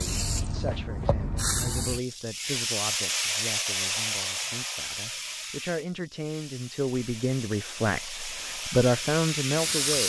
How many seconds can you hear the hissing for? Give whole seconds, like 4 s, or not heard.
10 s.